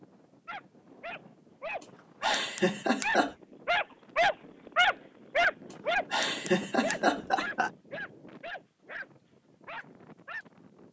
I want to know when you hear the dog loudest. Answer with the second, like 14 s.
5 s.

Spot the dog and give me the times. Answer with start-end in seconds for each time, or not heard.
0.5-10.4.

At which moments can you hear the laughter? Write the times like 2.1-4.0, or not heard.
1.8-3.4, 5.7-7.7.